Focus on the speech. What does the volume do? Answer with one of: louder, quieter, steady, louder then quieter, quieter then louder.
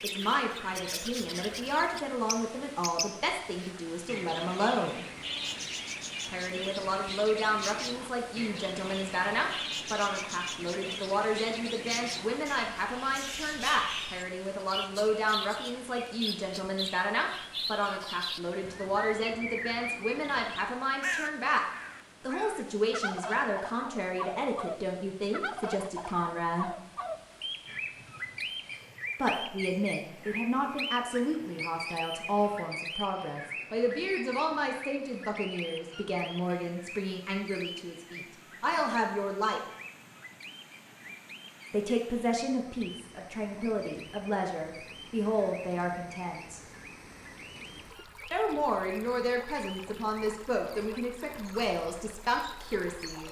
steady.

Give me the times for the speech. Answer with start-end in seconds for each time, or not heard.
0.0-5.0, 6.2-26.8, 29.1-39.6, 41.7-46.6, 48.3-53.2.